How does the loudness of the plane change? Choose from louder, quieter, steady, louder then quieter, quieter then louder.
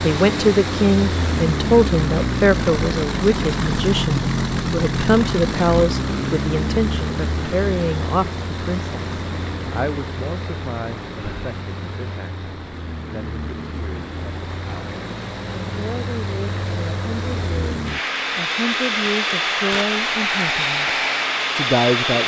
quieter then louder.